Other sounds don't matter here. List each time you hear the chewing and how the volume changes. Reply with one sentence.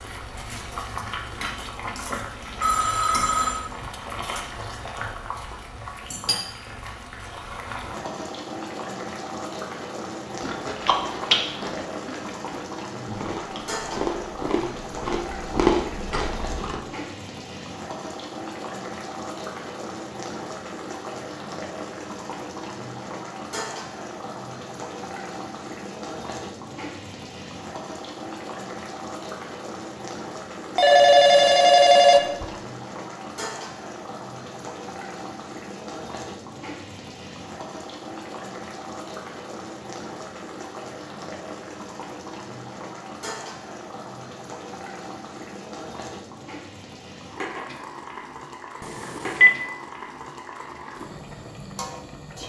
The chewing can be heard from 10.4 to 16.8 s, getting quieter then louder.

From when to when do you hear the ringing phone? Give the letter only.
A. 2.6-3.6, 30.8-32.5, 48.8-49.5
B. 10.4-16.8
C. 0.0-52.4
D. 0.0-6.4
A.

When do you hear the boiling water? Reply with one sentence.
The boiling water can be heard from 0.0 to 52.4 s.